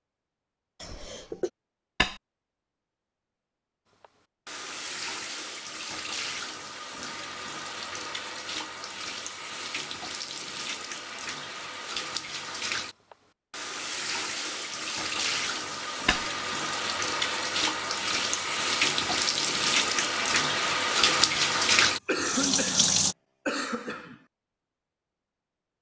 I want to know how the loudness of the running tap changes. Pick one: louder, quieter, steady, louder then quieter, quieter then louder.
louder.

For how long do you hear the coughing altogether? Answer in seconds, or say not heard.
3 s.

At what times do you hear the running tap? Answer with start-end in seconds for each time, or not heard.
4.0-23.1.